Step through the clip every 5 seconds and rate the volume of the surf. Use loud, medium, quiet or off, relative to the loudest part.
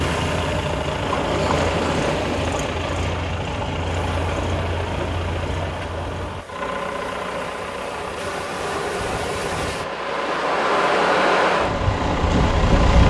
medium, medium, loud.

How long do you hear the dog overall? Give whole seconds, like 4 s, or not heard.
not heard.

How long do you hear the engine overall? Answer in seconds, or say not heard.
13 s.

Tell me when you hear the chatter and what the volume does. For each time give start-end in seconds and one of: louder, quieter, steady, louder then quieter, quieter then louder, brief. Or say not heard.
not heard.